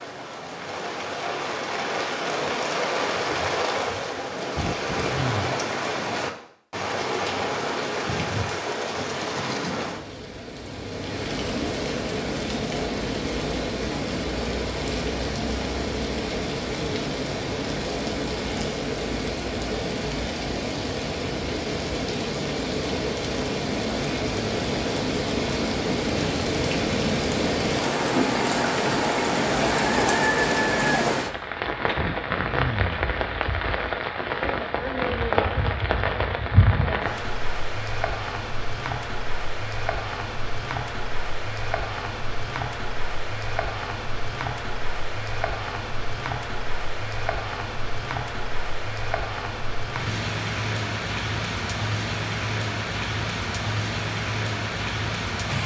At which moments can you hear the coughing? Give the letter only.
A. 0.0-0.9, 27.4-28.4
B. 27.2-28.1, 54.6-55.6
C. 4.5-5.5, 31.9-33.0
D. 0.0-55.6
C.